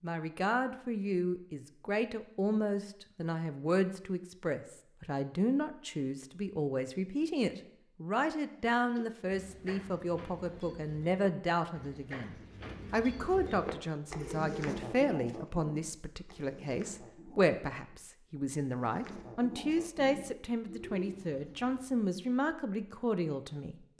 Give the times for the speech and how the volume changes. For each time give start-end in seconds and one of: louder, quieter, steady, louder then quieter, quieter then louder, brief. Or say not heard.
0.0-23.9 steady.